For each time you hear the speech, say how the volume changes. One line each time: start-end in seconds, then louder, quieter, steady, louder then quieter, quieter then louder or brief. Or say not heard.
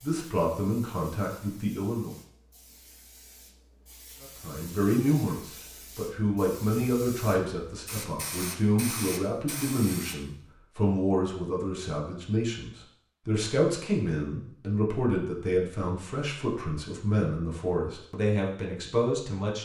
0.0-2.1 brief
4.2-19.5 steady.